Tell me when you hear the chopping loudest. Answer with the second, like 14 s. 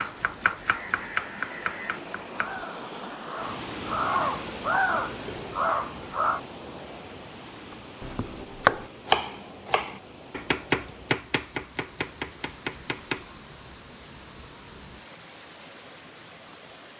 9 s.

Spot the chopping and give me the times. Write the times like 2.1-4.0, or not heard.
0.0-2.6, 8.0-13.3.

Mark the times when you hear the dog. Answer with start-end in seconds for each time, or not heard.
not heard.